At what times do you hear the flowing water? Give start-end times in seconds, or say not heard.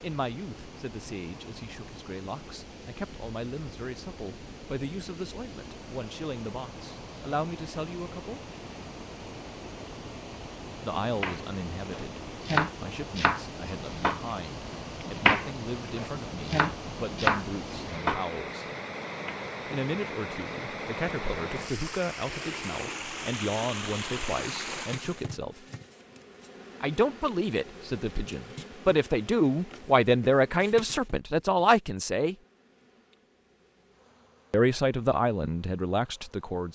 0.0-25.2.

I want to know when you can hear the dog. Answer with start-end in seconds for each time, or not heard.
not heard.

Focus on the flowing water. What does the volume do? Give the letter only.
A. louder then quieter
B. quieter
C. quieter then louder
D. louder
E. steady
D.